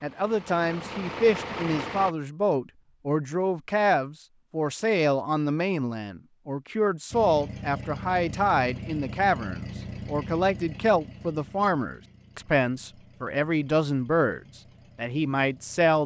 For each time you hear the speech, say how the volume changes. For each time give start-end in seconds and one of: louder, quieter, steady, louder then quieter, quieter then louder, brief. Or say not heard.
0.0-16.0 steady.